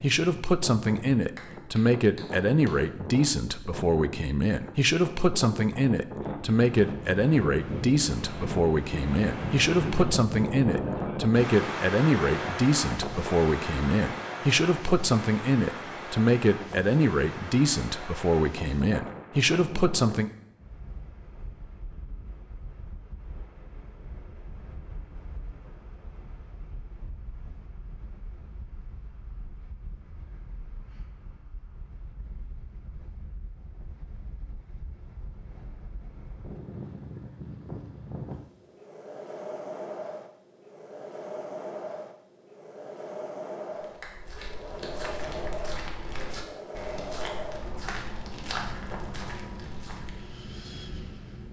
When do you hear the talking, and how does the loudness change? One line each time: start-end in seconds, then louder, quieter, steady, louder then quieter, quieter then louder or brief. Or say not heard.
0.0-20.3 steady.